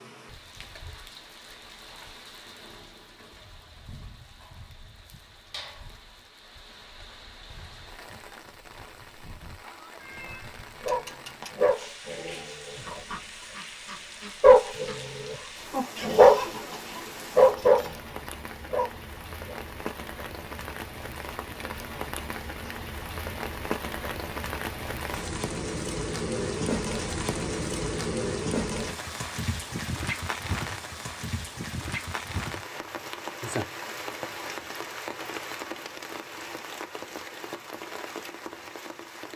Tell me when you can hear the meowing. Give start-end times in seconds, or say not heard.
9.9-11.6.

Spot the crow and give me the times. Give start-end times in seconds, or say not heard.
not heard.